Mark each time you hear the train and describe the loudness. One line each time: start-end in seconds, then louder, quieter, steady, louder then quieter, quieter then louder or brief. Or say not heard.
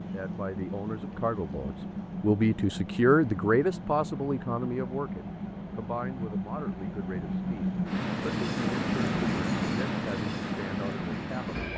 0.0-11.7 louder.